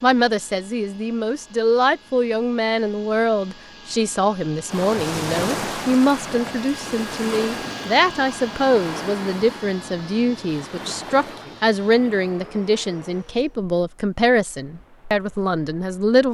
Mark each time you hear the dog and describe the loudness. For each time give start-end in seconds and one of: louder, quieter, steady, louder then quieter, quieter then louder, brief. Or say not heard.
not heard.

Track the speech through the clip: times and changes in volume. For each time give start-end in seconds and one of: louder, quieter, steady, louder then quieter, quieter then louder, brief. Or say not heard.
0.0-16.2 steady.